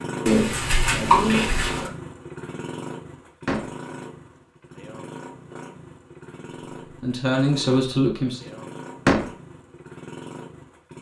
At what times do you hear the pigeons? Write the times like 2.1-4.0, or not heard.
0.2-1.9.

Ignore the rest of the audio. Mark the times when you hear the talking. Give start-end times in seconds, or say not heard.
7.0-8.5.